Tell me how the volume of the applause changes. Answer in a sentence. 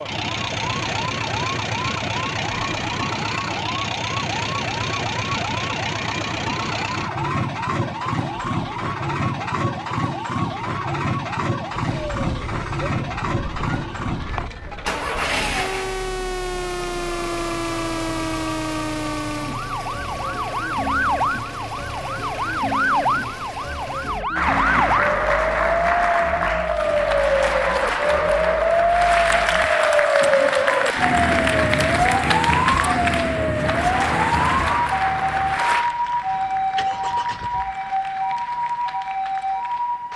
The loudness of the applause goes down.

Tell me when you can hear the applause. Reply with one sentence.
You can hear the applause from 24.4 to 40.1 s.